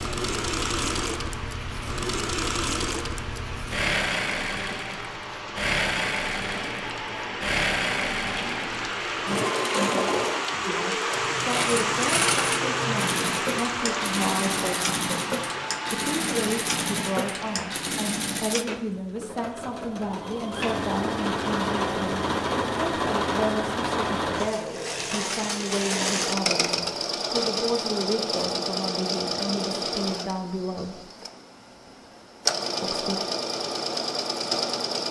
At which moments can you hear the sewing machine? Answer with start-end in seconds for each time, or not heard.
0.0-35.0.